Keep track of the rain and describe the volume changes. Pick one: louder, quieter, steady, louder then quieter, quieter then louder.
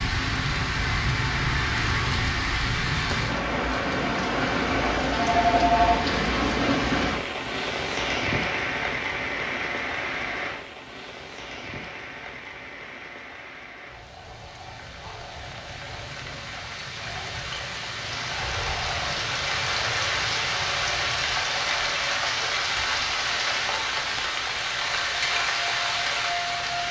quieter then louder.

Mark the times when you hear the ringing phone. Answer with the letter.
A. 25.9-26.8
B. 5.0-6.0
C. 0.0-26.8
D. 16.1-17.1
B.